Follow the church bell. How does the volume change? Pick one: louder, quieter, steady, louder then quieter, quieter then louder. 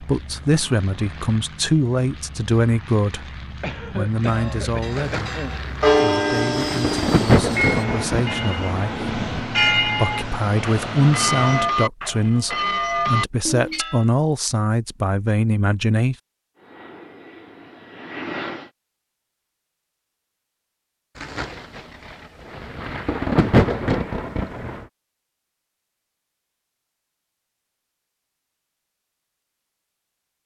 steady.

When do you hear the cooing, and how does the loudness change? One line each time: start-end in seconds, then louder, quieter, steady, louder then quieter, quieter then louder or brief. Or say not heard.
not heard.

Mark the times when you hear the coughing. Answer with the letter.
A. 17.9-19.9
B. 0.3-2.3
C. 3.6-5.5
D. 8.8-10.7
C.